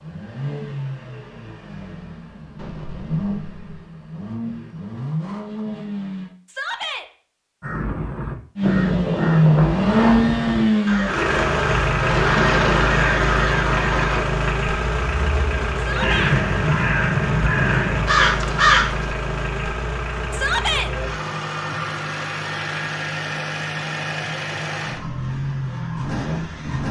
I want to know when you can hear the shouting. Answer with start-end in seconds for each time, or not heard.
6.5-7.0, 15.8-16.4, 20.3-20.9.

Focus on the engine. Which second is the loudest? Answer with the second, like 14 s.
10 s.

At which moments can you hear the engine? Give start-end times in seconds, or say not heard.
0.0-6.3, 8.6-26.8.